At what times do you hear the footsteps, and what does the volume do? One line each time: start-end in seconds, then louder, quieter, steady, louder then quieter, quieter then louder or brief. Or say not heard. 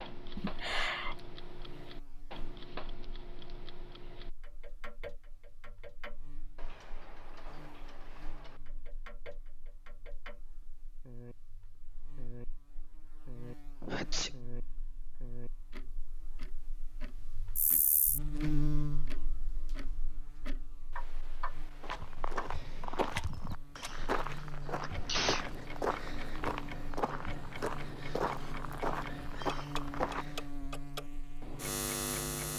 21.8-30.4 steady.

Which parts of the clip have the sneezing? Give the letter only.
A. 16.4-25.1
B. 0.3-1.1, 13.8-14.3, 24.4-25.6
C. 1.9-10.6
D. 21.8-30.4
B.